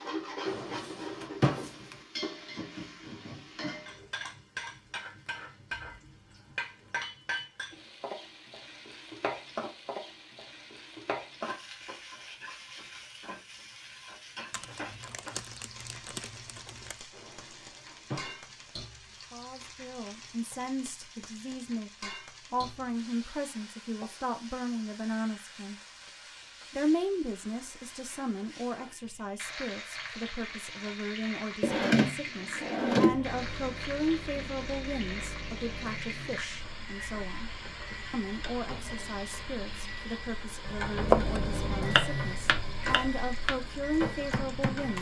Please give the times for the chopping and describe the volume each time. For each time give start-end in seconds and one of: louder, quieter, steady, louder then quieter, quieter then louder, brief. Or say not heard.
40.6-44.9 quieter.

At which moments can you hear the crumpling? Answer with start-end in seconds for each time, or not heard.
14.5-17.0.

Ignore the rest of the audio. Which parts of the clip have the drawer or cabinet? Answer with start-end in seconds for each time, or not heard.
0.5-1.9, 17.1-18.6, 31.6-33.2.